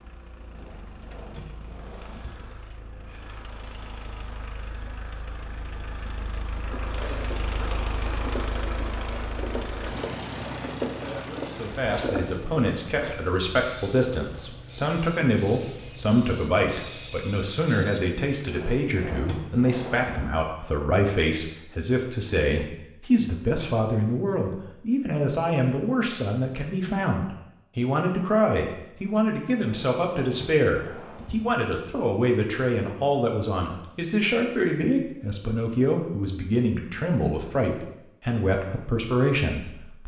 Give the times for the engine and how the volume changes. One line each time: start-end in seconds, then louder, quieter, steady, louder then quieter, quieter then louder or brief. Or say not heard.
0.0-17.2 louder then quieter.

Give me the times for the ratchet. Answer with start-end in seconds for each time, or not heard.
6.7-18.5.